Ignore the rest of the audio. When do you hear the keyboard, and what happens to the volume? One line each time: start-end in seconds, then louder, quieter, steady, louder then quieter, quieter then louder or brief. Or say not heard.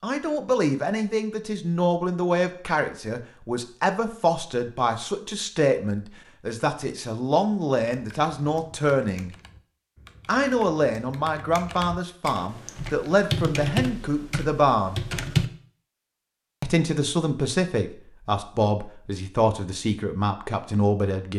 7.9-15.4 louder.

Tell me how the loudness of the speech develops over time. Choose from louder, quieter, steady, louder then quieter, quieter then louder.
steady.